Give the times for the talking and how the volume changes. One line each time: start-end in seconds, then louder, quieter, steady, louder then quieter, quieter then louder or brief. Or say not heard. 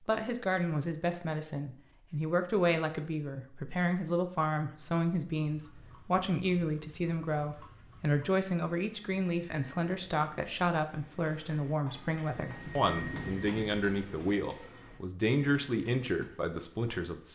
0.1-17.2 steady.